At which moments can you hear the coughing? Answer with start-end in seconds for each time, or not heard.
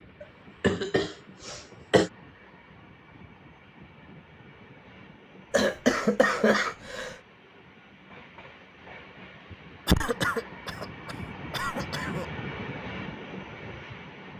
0.2-2.1, 5.5-7.2, 9.8-12.2.